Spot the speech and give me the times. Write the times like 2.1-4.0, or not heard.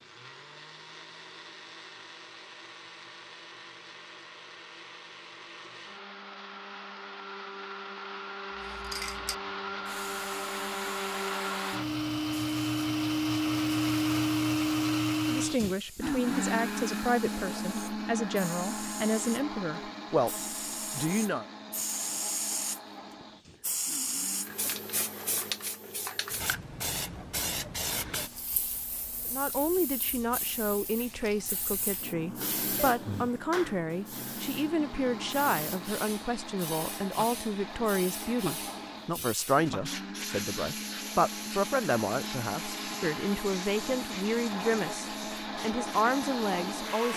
15.2-21.4, 29.2-47.1.